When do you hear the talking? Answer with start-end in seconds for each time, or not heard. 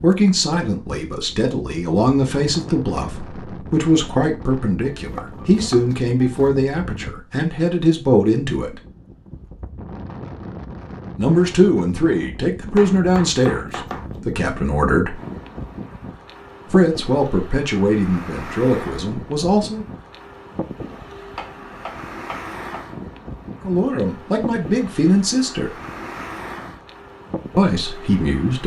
0.0-8.8, 11.2-15.2, 16.7-19.9, 23.6-25.7, 27.6-28.6.